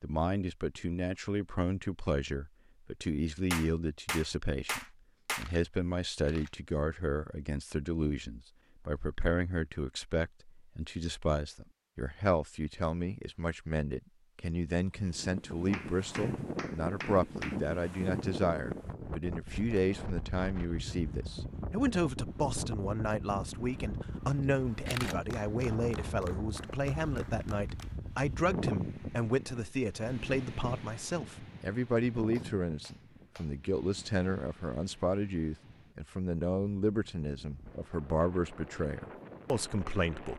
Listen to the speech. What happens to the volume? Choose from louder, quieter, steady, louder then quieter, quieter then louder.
steady.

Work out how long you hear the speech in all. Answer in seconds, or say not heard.
40 s.